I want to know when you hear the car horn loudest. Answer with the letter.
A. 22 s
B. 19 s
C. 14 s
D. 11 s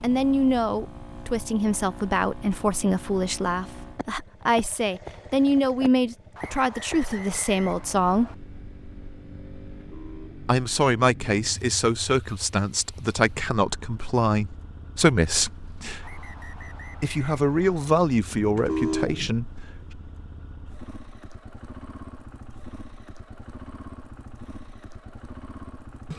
B.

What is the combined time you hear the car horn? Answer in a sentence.
You can hear the car horn for 2 seconds altogether.